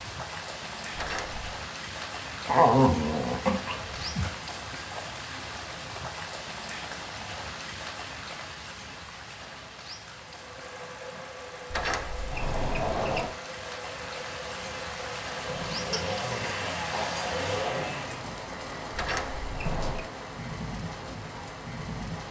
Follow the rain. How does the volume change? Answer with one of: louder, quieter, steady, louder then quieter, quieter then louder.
quieter then louder.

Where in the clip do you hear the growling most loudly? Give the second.
3 s.